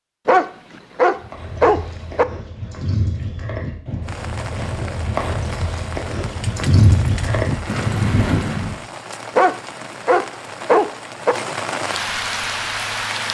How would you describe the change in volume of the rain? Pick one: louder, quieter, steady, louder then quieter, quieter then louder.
louder.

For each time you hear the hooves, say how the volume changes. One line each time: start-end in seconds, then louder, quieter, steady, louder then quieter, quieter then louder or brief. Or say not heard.
1.2-8.8 louder.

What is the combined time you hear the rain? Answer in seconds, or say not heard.
9 s.